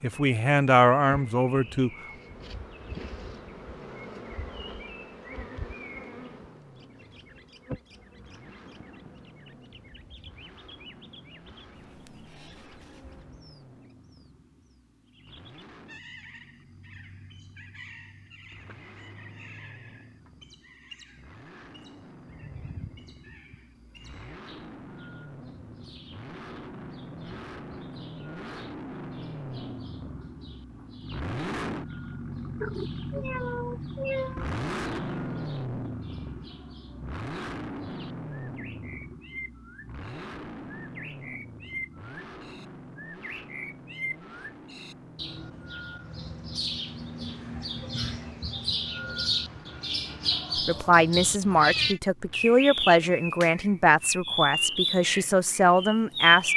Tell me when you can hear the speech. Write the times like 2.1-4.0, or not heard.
0.0-1.9, 50.5-56.5.